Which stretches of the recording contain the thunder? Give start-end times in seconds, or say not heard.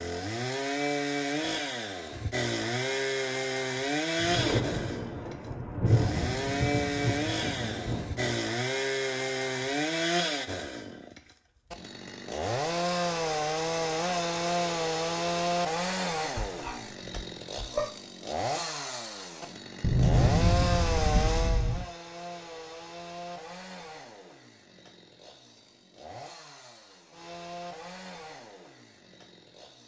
4.2-8.3, 19.8-21.9.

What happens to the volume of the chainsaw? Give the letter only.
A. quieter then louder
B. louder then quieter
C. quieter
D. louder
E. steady
C.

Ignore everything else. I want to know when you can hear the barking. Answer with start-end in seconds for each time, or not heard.
16.4-17.9.